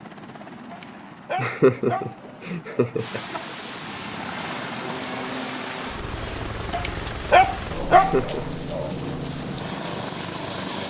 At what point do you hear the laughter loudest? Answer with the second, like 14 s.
2 s.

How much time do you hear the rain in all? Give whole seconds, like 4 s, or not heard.
8 s.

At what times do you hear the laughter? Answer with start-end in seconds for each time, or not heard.
1.4-3.2, 7.8-8.4.